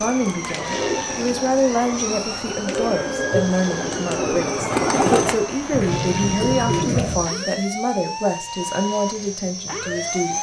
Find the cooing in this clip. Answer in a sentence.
The cooing can be heard from 0.0 to 7.2 s.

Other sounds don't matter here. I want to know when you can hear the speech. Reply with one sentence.
You can hear the speech from 0.0 to 10.3 s.